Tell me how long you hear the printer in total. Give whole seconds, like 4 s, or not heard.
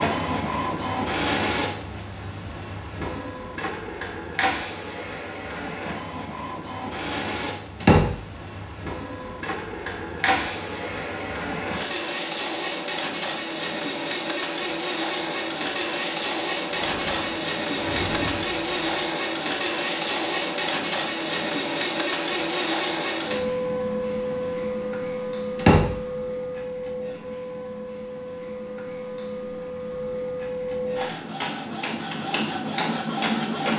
34 s.